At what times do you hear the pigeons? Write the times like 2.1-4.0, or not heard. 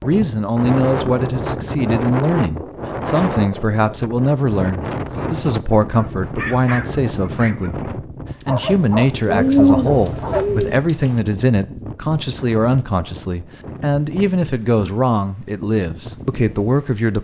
9.2-10.8.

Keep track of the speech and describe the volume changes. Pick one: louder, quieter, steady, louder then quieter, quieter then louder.
steady.